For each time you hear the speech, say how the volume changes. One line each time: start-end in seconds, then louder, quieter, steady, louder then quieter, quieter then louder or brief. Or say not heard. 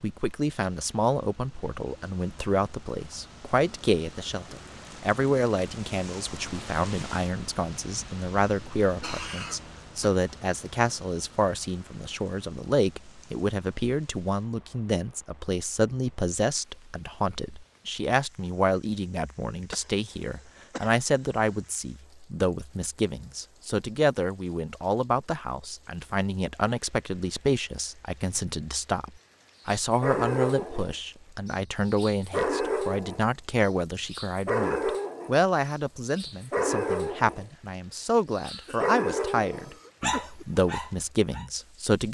0.0-42.1 steady.